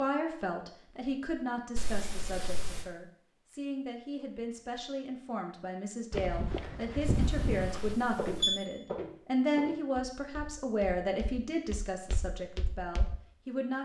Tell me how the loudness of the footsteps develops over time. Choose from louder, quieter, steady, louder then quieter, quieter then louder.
quieter then louder.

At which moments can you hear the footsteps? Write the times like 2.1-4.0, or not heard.
6.1-13.2.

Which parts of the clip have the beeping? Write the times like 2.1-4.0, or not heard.
1.8-2.9, 7.0-8.6.